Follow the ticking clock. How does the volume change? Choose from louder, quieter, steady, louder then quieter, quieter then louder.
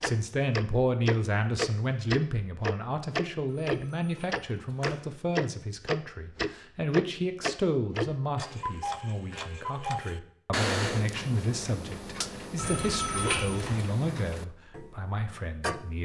quieter.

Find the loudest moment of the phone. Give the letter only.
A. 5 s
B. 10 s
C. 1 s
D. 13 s
D.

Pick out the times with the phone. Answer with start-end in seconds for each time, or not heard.
3.5-5.0, 12.6-13.9.